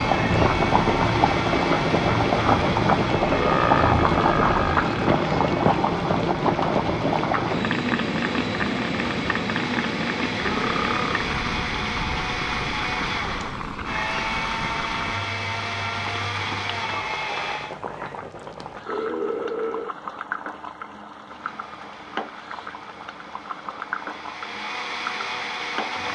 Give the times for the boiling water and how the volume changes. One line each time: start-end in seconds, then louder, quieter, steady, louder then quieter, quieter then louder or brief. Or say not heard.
0.0-26.1 quieter.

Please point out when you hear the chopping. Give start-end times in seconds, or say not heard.
not heard.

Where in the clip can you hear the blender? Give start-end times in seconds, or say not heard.
0.0-17.8, 21.2-26.1.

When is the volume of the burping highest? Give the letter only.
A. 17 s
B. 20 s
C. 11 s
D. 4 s
D.